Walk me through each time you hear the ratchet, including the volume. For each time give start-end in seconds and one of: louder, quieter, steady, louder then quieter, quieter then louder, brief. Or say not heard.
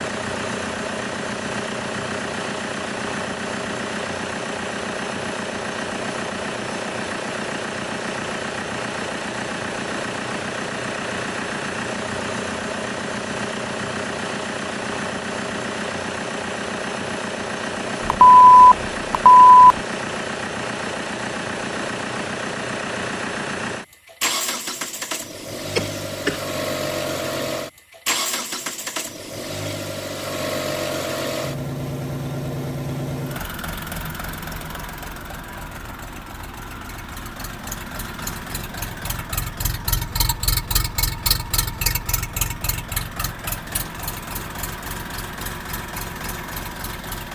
not heard.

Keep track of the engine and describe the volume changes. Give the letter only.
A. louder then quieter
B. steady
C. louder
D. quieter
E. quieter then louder
B.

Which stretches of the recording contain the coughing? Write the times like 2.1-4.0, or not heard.
25.8-26.4.